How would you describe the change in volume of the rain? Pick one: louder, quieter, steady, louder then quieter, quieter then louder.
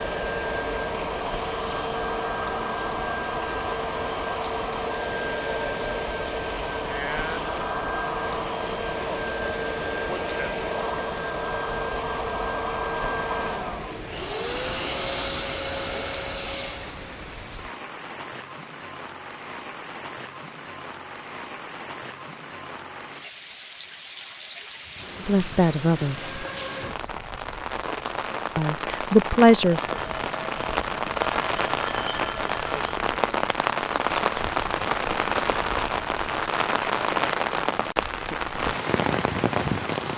louder.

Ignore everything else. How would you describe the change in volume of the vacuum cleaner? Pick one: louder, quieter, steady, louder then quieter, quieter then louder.
steady.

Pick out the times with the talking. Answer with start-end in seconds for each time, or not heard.
25.2-26.4, 28.6-29.8.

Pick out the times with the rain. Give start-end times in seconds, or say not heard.
0.0-40.1.